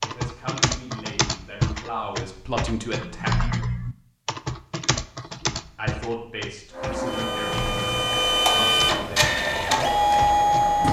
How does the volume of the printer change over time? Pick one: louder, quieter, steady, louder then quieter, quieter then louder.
louder.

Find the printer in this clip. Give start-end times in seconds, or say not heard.
6.7-10.8.